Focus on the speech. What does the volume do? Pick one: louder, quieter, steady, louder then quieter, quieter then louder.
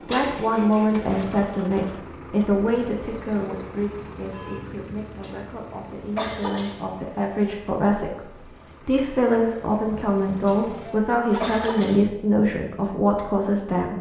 quieter then louder.